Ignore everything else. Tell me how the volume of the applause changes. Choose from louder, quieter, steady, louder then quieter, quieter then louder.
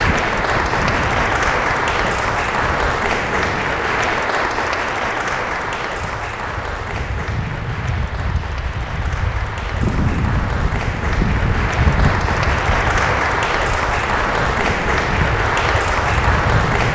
quieter then louder.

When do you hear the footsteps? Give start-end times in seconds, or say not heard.
not heard.